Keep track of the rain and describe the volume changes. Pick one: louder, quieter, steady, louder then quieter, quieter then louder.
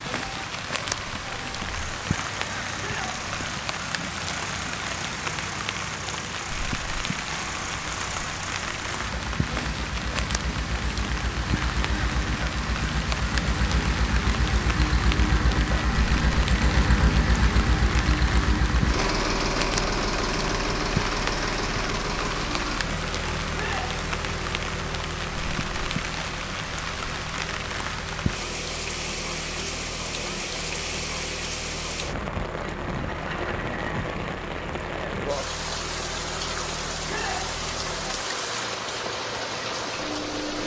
steady.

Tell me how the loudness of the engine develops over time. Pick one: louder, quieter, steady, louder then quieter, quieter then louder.
louder then quieter.